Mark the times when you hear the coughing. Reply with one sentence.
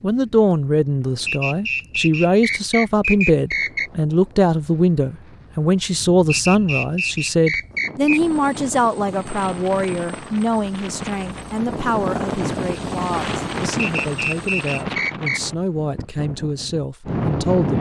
You can't hear the coughing here.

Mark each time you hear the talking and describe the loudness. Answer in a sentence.
You can hear the talking from 0.0 to 17.7 s, getting quieter.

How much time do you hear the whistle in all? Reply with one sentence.
You can hear the whistle for 6 seconds altogether.